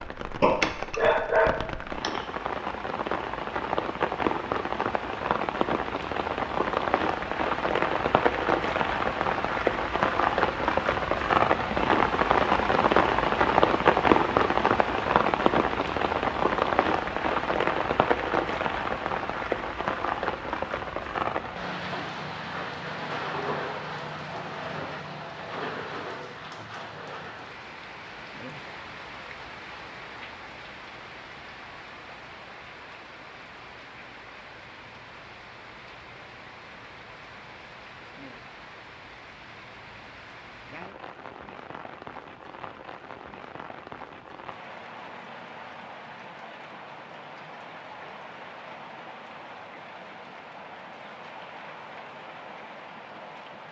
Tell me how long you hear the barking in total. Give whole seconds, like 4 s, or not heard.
2 s.